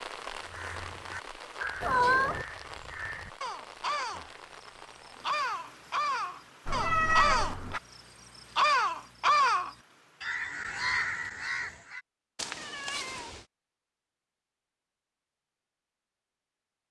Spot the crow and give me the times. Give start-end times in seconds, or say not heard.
0.4-12.0.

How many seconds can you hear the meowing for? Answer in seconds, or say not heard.
3 s.